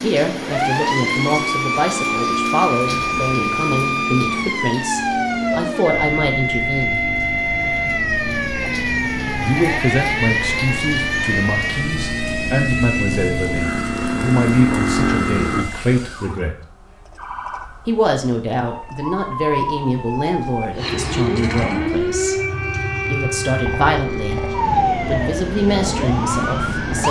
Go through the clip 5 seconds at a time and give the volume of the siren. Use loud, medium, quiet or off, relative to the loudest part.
loud, loud, loud, medium, loud, loud.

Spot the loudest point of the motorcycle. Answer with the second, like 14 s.
15 s.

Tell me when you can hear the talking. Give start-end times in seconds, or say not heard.
0.0-7.0, 9.4-16.6, 17.9-22.4, 23.1-24.4, 25.1-27.0.